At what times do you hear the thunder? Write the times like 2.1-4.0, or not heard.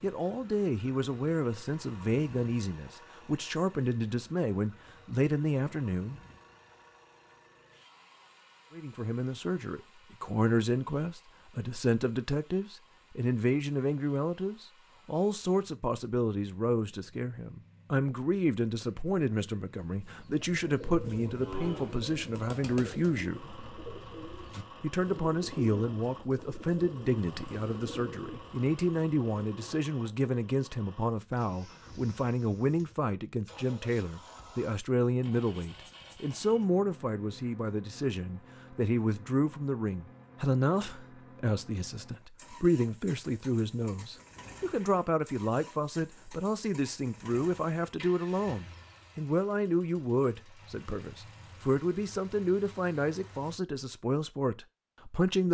not heard.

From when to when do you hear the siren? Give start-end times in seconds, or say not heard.
not heard.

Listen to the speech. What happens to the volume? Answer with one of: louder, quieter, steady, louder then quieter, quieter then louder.
steady.